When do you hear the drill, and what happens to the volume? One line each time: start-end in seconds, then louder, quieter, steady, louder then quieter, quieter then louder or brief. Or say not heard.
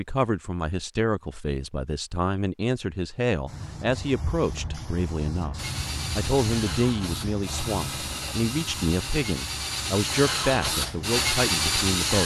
5.5-12.2 louder.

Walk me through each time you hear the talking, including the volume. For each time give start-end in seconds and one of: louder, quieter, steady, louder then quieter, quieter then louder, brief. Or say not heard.
0.0-12.2 steady.